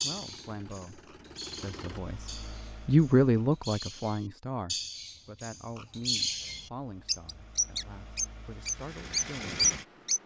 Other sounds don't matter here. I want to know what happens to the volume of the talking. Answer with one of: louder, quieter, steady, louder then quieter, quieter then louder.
louder then quieter.